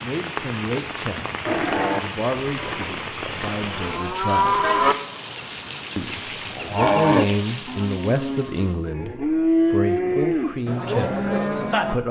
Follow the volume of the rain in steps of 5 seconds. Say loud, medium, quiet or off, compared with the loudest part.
loud, loud, off.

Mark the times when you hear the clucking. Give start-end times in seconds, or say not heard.
not heard.